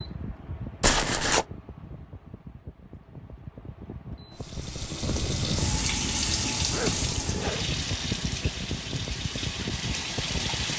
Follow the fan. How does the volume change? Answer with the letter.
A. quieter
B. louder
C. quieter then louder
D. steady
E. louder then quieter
B.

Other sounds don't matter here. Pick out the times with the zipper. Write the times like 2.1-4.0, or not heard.
0.8-1.4, 6.7-7.7.